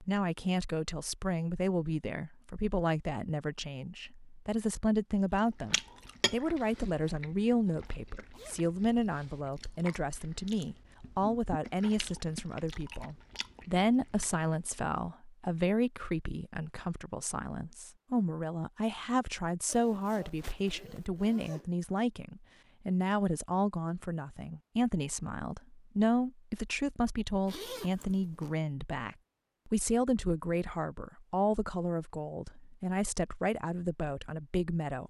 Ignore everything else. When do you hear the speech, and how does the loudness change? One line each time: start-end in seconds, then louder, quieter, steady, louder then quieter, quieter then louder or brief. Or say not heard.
0.0-35.0 steady.